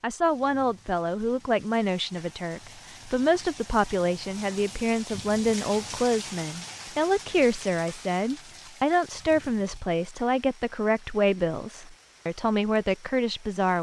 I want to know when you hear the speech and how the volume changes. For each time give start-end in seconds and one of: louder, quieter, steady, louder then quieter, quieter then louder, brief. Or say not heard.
0.0-13.7 steady.